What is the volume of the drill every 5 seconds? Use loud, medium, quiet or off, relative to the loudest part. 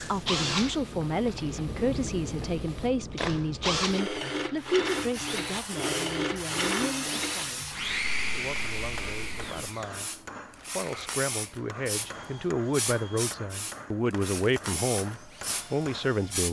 loud, loud, quiet, quiet.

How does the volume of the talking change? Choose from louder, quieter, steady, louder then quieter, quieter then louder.
quieter then louder.